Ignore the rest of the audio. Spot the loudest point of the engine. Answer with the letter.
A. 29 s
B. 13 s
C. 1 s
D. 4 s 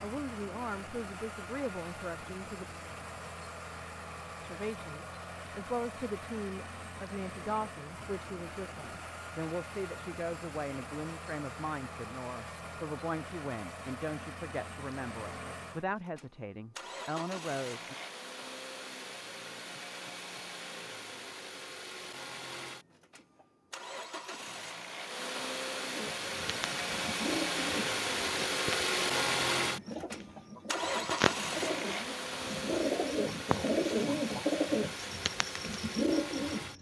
A.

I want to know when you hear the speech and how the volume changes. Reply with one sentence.
The speech can be heard briefly from 0.0 to 2.6 s; and from 4.4 to 17.9 s, at a steady volume.